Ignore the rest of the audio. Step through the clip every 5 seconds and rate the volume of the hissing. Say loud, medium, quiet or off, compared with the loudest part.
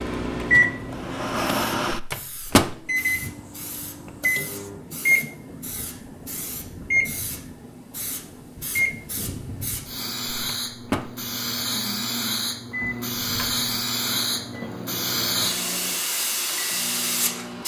quiet, quiet, loud, loud.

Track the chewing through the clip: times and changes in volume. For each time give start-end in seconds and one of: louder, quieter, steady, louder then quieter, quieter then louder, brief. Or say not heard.
not heard.